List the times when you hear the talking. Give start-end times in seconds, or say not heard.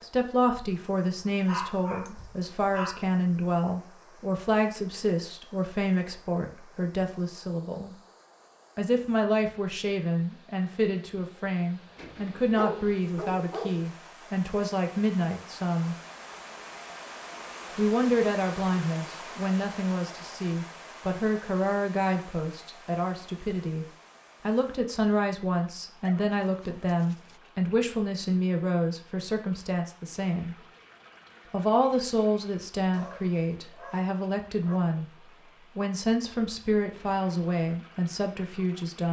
0.0-8.0, 8.8-15.9, 17.8-30.6, 31.5-35.0, 35.8-39.0.